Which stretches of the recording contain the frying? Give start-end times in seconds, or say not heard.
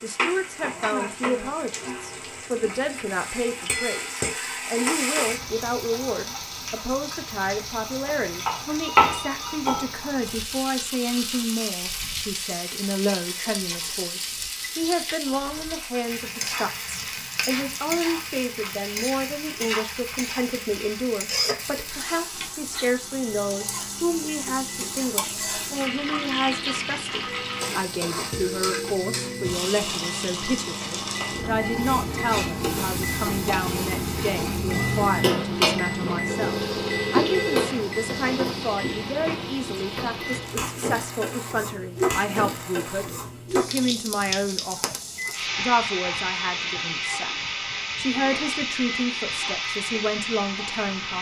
0.0-51.1.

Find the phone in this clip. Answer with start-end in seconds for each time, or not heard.
8.8-9.7, 36.2-37.7.